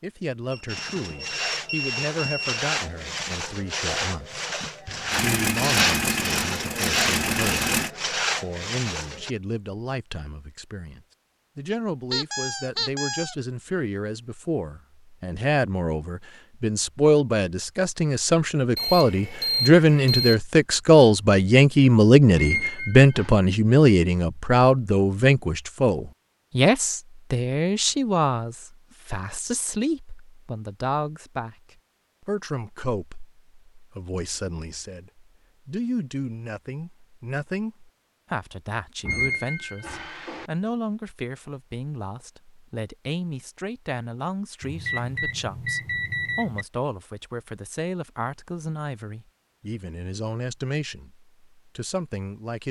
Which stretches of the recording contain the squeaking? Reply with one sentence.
You can hear the squeaking from 12.1 to 13.3 s, from 22.4 to 23.3 s and from 39.0 to 40.5 s.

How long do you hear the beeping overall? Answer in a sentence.
The beeping can be heard for 6 seconds in total.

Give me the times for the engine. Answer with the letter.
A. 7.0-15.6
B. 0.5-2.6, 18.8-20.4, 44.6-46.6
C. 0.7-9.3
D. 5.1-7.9
D.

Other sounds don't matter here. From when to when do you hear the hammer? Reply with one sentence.
The hammer can't be heard in this clip.